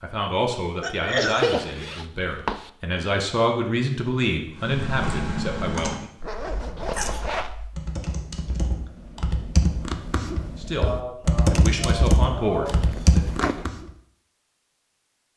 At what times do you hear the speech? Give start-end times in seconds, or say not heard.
0.0-6.0, 10.6-13.2.